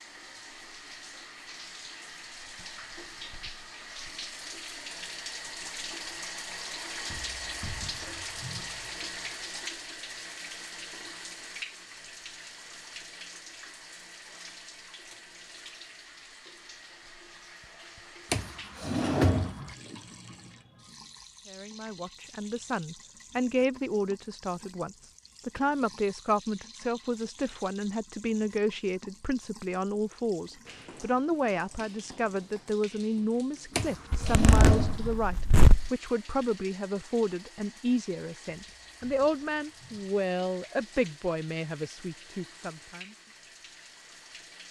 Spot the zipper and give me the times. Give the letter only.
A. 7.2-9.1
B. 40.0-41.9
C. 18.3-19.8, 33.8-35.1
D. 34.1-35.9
D.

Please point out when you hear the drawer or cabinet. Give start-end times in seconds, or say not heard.
18.3-19.8, 33.8-35.1.